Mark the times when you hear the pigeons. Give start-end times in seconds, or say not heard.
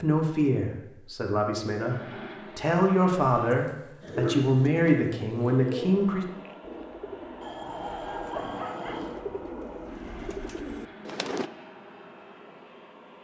4.0-11.5.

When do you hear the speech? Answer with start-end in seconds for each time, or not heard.
0.0-6.2.